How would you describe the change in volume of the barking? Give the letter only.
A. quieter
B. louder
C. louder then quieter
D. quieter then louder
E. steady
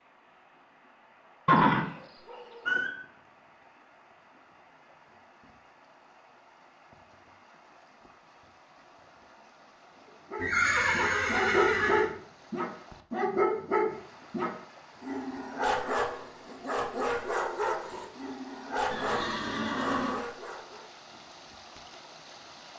A.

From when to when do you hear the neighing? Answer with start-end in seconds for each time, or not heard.
1.4-2.9, 10.3-12.1, 18.9-20.2.